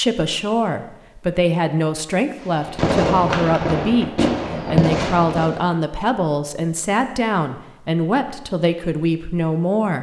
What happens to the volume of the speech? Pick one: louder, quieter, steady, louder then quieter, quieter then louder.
steady.